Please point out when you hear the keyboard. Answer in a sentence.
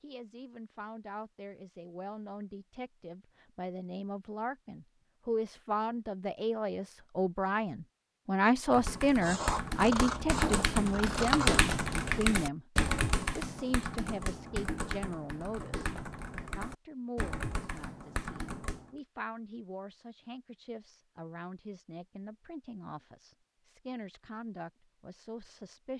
The keyboard can be heard from 8.7 to 18.9 s.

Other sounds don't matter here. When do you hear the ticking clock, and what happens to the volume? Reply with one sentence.
The ticking clock can't be heard in this clip.